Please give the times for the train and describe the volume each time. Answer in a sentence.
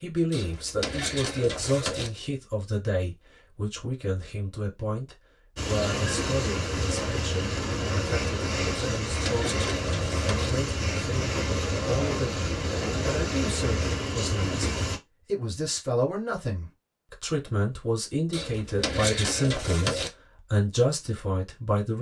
You can hear the train from 5.5 to 15.0 s, at a steady volume.